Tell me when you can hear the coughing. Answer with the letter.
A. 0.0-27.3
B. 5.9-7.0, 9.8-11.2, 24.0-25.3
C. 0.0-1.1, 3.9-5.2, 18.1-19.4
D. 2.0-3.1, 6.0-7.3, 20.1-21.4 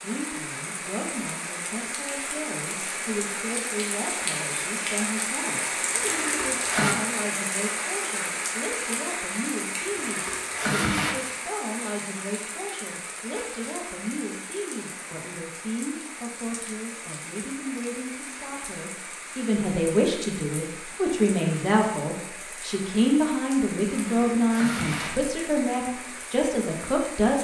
B.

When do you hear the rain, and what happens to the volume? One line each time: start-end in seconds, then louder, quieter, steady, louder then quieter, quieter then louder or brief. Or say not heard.
0.0-27.3 quieter.